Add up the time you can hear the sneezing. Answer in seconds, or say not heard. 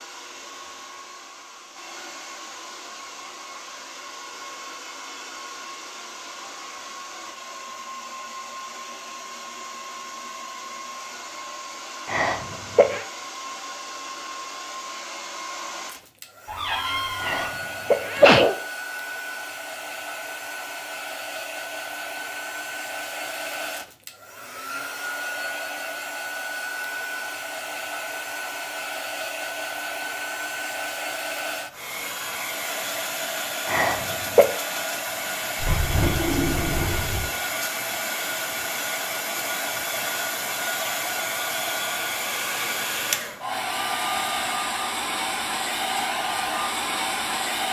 3 s.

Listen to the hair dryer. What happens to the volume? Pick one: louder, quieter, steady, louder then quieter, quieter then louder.
louder.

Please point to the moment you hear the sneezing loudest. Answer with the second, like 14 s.
18 s.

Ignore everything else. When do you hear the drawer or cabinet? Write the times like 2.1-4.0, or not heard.
16.4-17.6, 35.6-37.3.